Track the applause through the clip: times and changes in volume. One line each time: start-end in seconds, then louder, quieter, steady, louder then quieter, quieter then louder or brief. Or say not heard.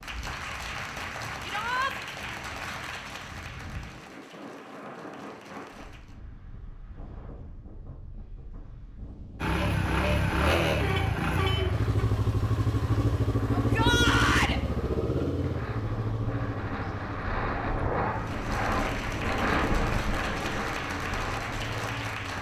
0.0-6.2 quieter
18.1-22.3 steady.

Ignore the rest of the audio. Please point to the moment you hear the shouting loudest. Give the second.
14 s.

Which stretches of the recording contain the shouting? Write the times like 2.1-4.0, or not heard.
1.4-1.9, 13.5-14.6.